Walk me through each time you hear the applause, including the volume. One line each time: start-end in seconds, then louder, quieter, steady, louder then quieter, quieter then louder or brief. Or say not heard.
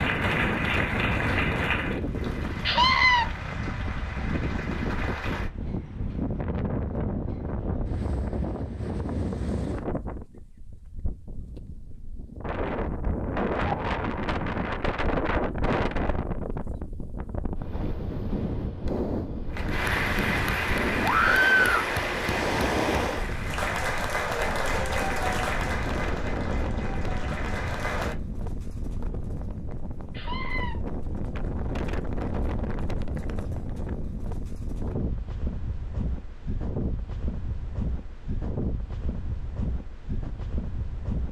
0.0-5.5 quieter
19.5-28.1 quieter.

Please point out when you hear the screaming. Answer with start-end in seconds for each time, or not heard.
2.6-3.2, 21.0-21.9, 30.1-30.8.